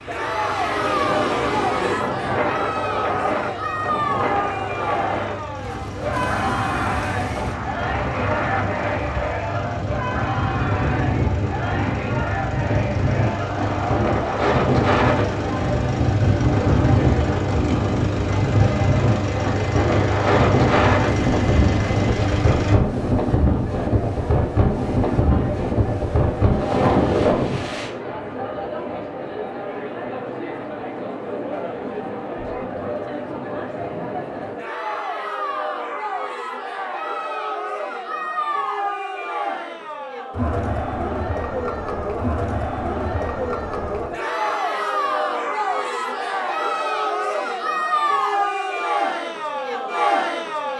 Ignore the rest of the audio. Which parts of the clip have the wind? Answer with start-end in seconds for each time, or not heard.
0.0-27.9.